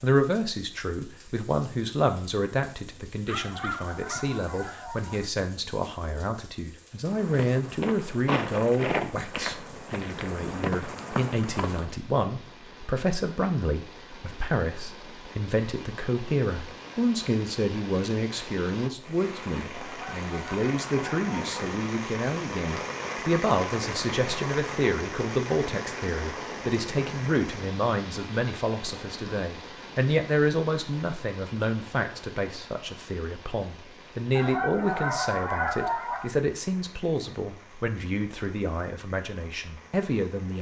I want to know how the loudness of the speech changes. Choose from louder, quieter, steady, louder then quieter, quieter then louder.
steady.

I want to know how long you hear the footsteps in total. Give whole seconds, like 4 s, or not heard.
5 s.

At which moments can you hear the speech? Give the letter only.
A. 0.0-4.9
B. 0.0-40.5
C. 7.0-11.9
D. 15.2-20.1
B.